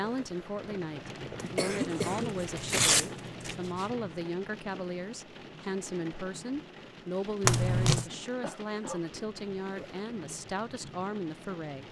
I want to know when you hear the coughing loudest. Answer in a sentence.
The volume of the coughing peaks at 2 seconds.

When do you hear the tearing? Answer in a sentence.
You can hear the tearing from 1.4 to 3.9 s and from 7.4 to 8.1 s.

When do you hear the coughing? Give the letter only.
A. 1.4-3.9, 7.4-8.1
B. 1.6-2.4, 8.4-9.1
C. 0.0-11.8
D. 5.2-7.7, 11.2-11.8
B.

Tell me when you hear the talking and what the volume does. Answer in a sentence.
The talking can be heard from 0.0 to 11.8 s, at a steady volume.